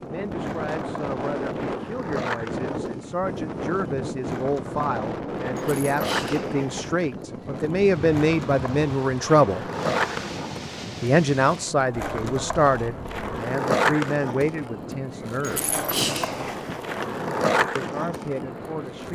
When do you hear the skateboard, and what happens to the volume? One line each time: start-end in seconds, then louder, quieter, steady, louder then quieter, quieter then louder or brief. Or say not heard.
0.0-19.1 louder.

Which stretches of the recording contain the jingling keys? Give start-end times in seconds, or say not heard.
5.5-7.2, 15.4-17.2.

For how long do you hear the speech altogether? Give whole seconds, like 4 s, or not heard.
16 s.